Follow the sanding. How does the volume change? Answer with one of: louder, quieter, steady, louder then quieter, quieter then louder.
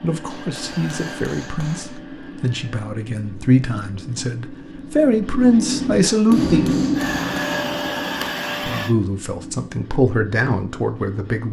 louder then quieter.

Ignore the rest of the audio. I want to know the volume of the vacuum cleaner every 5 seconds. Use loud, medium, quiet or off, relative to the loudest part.
quiet, loud, off.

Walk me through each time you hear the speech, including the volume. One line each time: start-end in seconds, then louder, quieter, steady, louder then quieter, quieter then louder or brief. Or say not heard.
0.0-6.8 louder
8.6-11.4 brief.